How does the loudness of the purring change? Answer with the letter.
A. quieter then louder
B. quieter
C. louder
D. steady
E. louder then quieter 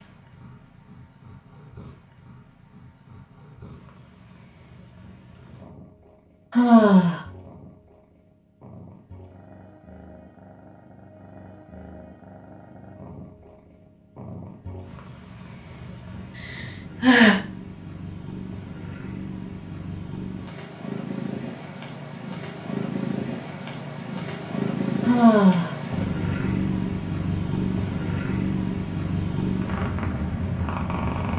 C.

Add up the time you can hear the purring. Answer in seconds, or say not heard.
31 s.